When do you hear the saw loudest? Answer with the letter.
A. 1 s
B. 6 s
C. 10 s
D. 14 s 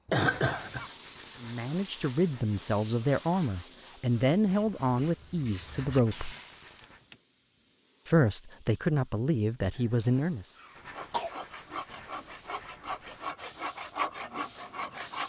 D.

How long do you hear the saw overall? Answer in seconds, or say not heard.
4 s.